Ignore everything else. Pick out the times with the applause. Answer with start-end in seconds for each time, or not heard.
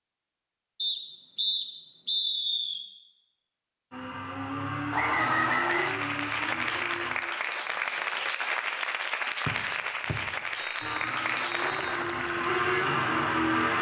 5.6-13.7.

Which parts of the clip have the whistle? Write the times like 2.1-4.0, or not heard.
0.8-2.8, 4.9-6.0, 9.4-11.9.